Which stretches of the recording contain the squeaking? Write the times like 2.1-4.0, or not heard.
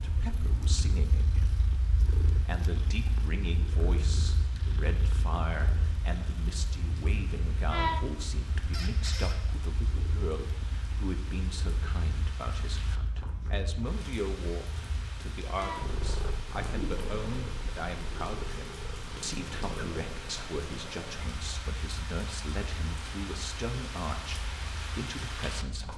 8.7-9.3.